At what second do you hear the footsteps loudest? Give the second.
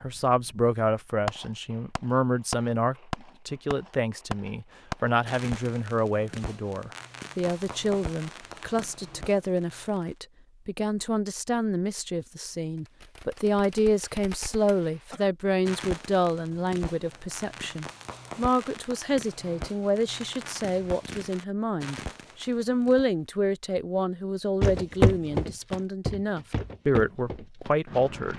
25 s.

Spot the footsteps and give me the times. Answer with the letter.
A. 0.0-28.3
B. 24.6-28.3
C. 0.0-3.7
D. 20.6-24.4
B.